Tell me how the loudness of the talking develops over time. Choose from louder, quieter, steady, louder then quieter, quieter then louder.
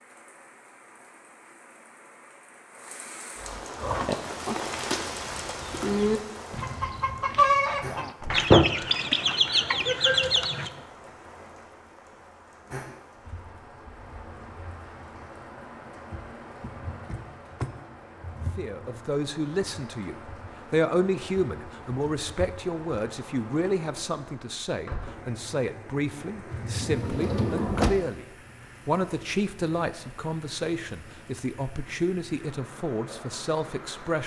steady.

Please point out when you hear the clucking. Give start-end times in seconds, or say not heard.
3.8-10.7.